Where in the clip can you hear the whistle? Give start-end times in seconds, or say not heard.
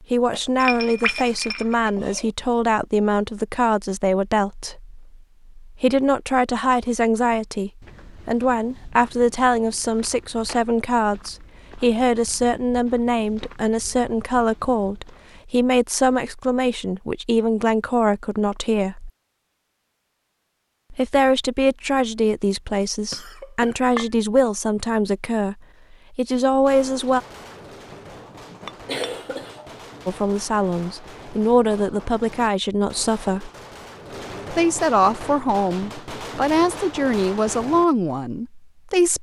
not heard.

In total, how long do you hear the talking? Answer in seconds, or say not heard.
33 s.